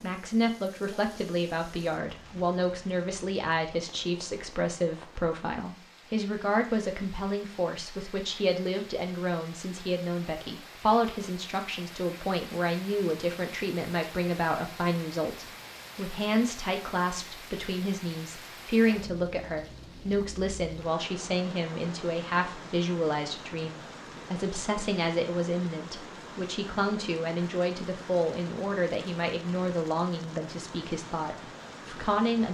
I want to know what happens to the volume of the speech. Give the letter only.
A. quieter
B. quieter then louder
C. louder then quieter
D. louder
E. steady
E.